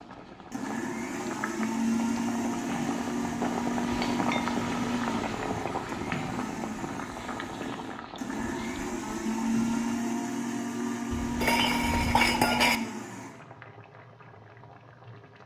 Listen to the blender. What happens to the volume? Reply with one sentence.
The loudness of the blender goes down, then up.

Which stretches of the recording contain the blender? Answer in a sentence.
The blender can be heard from 0.5 to 13.3 s.